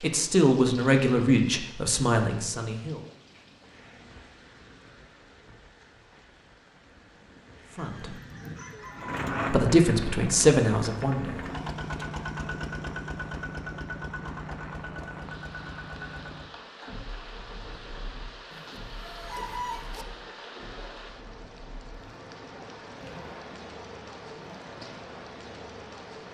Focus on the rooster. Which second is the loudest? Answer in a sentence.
The loudest moment of the rooster is at 20 seconds.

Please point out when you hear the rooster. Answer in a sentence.
You can hear the rooster from 7.8 to 9.2 s and from 18.5 to 20.1 s.